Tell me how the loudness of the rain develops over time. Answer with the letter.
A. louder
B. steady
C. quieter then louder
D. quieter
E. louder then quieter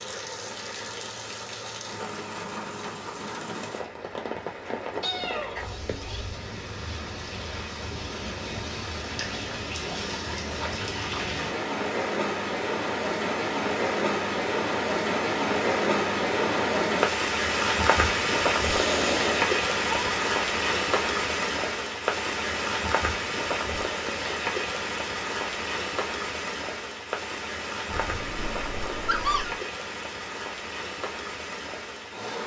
E.